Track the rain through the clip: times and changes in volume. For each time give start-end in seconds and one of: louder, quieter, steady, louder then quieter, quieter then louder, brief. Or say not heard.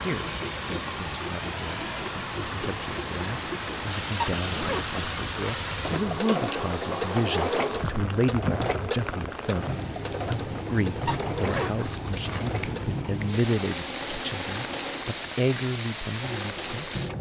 0.0-17.1 steady.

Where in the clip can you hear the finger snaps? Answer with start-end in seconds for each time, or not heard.
12.6-13.3.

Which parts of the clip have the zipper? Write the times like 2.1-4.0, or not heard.
4.2-6.2, 11.1-12.8.